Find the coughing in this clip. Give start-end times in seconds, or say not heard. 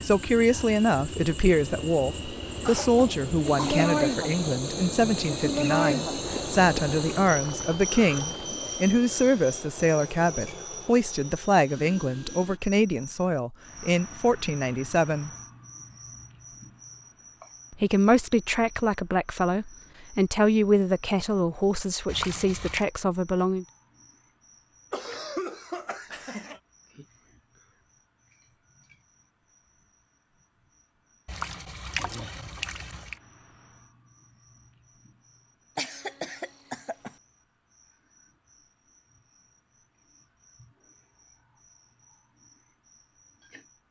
2.6-3.9, 24.9-26.6, 35.8-37.1.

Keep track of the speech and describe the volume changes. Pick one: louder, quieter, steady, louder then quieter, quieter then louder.
steady.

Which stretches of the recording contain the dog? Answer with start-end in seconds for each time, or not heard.
not heard.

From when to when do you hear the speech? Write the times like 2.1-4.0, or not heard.
0.0-15.3, 17.7-23.6.